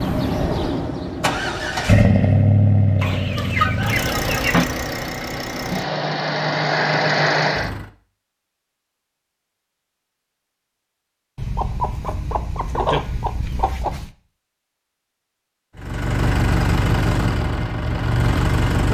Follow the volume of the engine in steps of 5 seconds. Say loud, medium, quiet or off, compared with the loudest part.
loud, loud, off, loud.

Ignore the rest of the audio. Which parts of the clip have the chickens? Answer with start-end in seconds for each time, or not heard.
3.0-4.7, 11.3-14.1.